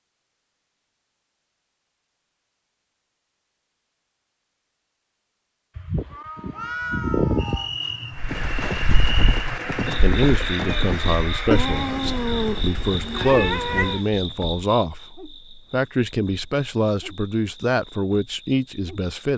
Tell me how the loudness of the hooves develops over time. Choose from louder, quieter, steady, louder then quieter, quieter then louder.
quieter.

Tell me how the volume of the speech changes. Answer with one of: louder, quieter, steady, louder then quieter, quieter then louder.
steady.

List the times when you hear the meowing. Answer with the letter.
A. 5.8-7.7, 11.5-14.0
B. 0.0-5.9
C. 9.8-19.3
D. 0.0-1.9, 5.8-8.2
A.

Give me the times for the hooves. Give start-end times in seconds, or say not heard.
8.2-14.1.